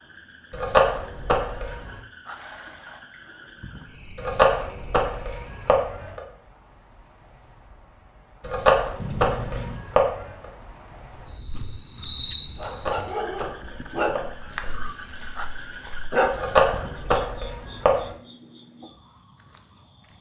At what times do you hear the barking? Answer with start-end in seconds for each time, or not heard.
11.2-16.6.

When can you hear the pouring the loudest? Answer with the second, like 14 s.
9 s.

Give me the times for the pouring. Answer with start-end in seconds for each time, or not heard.
2.4-3.0, 8.9-9.8, 14.7-15.9.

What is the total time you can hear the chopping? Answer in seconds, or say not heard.
9 s.